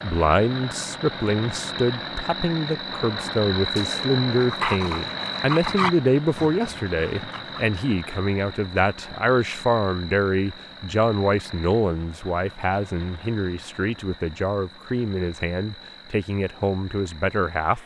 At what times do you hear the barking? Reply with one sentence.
You can hear the barking from 4.4 to 7.7 s.